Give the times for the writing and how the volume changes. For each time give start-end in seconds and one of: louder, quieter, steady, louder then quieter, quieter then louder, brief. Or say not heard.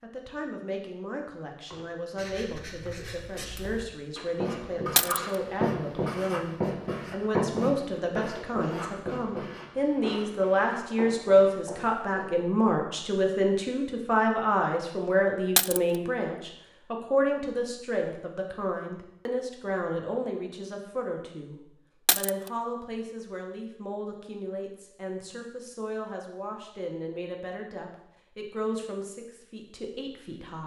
1.6-12.3 louder then quieter.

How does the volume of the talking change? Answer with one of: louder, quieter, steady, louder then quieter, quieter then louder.
louder then quieter.